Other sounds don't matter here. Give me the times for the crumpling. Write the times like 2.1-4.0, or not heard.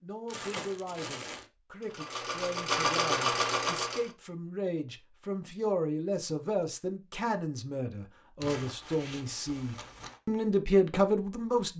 0.2-1.4, 8.4-10.2.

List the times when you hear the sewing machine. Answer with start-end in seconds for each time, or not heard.
1.8-4.1.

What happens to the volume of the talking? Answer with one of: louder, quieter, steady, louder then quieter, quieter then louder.
louder.